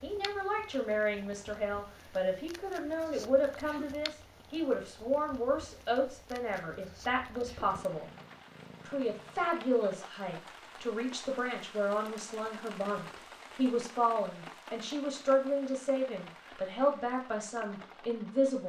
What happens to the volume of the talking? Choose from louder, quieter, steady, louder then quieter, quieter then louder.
steady.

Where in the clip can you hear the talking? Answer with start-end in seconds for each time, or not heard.
0.0-8.1, 8.8-18.6.